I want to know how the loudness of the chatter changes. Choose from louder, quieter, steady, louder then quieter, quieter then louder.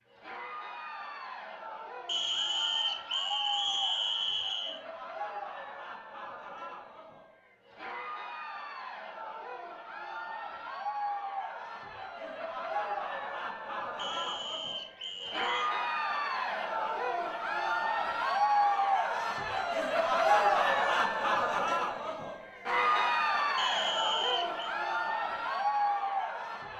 louder.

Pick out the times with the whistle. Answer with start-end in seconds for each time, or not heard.
2.0-4.8, 13.9-15.7, 23.6-24.8.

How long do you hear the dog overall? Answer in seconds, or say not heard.
not heard.